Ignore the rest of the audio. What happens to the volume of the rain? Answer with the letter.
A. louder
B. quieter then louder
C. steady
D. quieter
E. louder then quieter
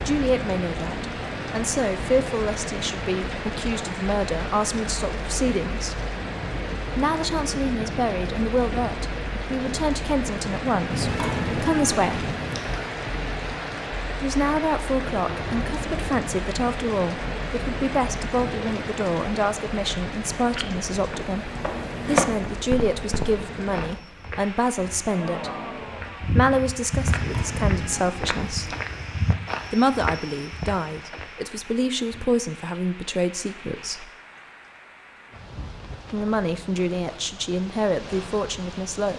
D.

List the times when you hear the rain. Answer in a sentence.
The rain can be heard from 0.0 to 39.1 s.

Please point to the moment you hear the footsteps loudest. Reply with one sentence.
The loudest moment of the footsteps is at 22 seconds.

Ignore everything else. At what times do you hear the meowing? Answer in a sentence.
The meowing can be heard from 10.9 to 12.9 s and from 27.1 to 29.1 s.